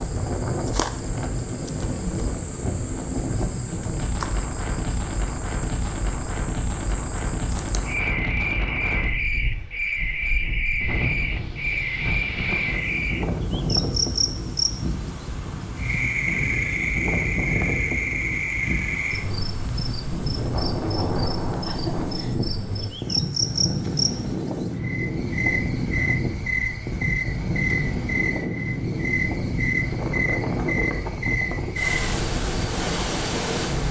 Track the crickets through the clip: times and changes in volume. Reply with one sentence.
You can hear the crickets from 0.0 to 33.8 s, getting louder.